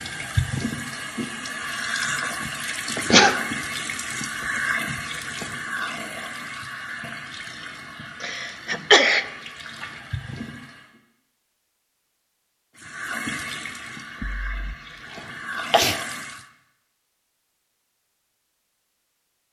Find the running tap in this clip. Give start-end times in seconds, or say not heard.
0.0-11.0, 12.8-16.4.